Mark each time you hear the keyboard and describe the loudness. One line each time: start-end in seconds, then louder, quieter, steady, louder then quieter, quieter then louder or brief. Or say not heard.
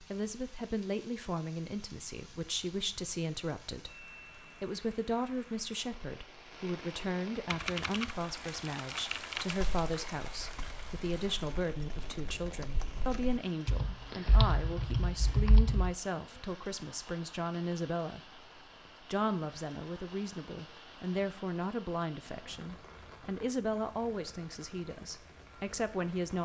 7.5-15.9 quieter then louder.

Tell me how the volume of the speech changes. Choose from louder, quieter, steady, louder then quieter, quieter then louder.
steady.